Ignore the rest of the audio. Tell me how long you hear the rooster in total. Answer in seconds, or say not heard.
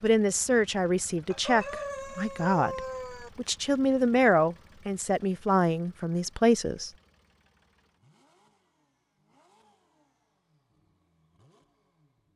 2 s.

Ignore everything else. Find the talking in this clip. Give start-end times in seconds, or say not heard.
0.0-6.9.